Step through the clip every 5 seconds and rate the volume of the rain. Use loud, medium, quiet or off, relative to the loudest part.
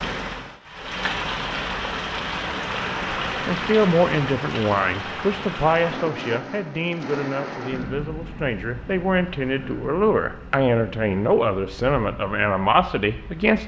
loud, medium, quiet.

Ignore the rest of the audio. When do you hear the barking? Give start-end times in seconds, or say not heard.
not heard.